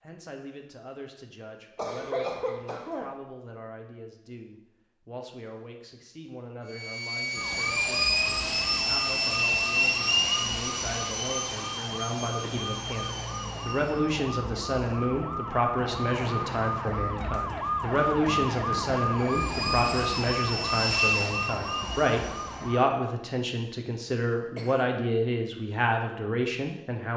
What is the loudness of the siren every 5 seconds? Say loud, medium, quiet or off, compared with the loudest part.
off, medium, medium, loud, loud, off.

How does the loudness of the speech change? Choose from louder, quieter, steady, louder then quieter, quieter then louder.
louder.